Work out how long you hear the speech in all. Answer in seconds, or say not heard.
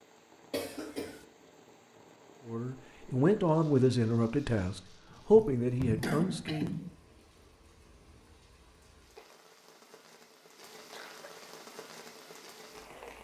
4 s.